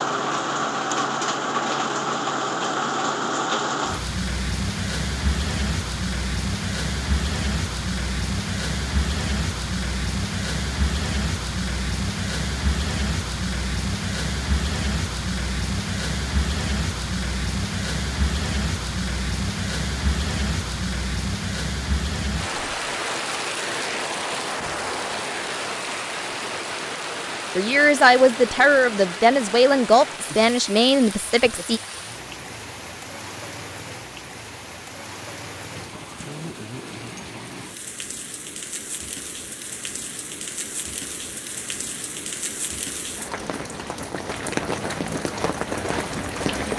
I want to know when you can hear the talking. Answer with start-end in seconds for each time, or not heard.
27.6-31.8.